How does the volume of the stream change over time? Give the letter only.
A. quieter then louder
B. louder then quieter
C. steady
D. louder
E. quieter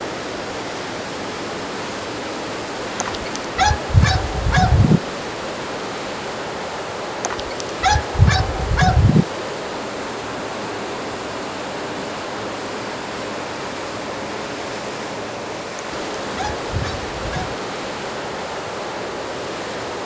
C.